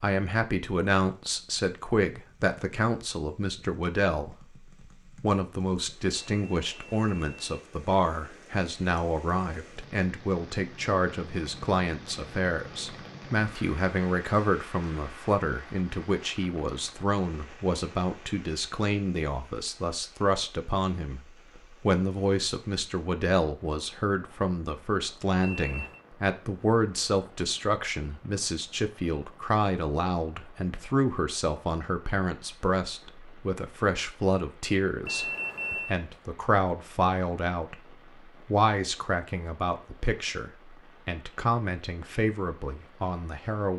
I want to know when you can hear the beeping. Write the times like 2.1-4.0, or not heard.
6.1-7.6, 25.4-26.0, 35.0-36.0.